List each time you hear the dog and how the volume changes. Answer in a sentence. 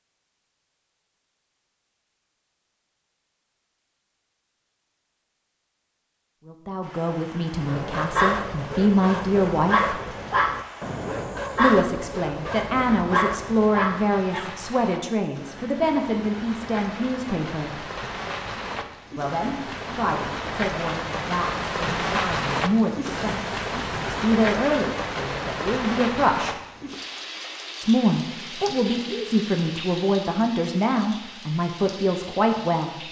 The dog can be heard from 7.6 to 14.5 s, at a steady volume.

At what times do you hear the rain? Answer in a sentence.
The rain can be heard from 6.8 to 33.0 s.